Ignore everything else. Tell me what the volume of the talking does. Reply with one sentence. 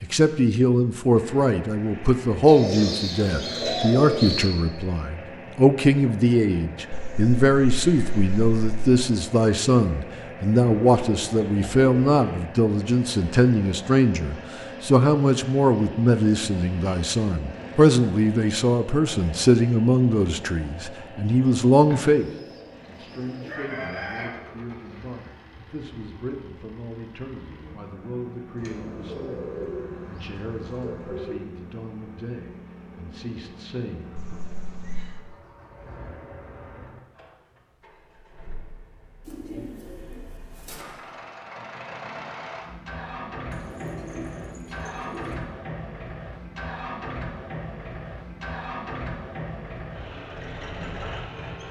The volume of the talking goes down.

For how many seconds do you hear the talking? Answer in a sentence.
You can hear the talking for 34 seconds altogether.